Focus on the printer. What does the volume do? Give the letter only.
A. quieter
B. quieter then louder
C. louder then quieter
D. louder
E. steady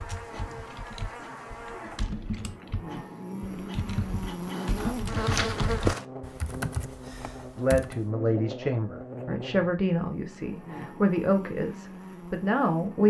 D.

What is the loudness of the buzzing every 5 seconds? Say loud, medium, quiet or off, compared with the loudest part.
loud, loud, medium.